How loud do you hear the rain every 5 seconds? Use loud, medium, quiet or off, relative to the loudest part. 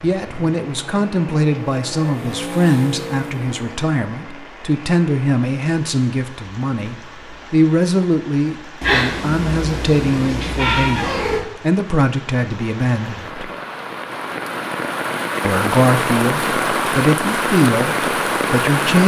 quiet, quiet, medium, loud.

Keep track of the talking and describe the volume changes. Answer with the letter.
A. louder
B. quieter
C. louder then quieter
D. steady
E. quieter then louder
D.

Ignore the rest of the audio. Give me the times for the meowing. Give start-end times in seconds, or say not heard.
8.8-11.4.